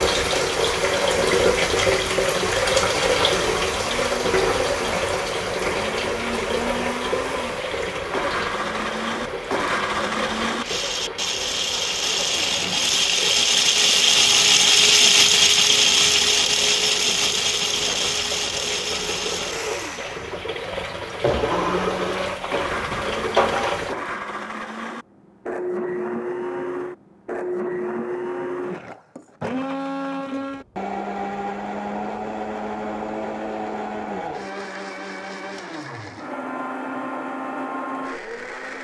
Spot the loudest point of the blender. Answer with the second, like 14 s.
15 s.